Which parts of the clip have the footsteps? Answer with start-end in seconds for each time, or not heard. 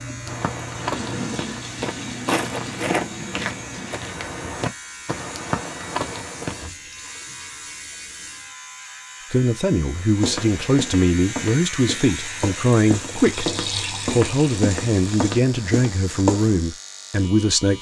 0.2-6.7, 10.2-16.6.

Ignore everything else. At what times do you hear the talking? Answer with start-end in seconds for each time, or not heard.
9.3-17.7.